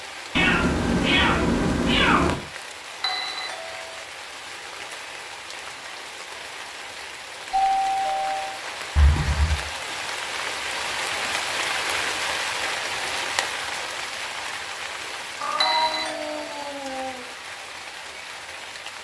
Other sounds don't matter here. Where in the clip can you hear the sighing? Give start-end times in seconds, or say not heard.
not heard.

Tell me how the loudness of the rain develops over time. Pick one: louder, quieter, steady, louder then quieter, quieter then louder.
louder then quieter.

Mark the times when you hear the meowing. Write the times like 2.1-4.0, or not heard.
0.3-2.4, 8.9-9.6, 15.4-17.3.